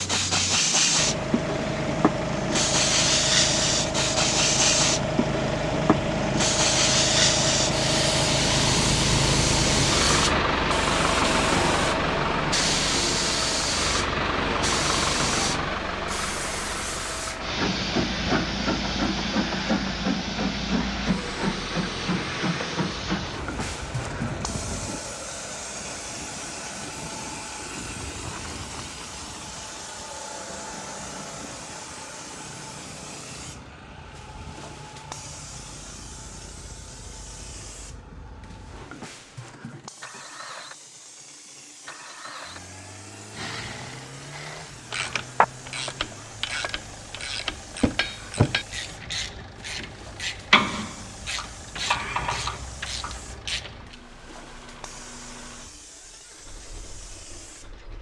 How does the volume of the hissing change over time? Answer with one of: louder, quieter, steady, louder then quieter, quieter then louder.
quieter.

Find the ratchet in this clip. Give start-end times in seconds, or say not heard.
43.3-54.0.